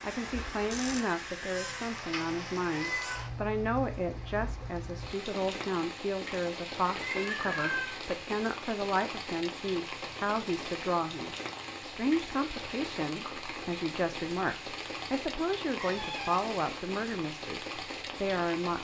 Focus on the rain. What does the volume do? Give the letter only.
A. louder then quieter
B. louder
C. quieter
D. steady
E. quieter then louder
D.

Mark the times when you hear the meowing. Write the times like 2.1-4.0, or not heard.
0.7-3.2, 7.0-8.1, 15.8-16.4.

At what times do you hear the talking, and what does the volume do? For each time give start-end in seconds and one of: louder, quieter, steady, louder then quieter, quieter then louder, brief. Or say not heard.
0.0-18.7 steady.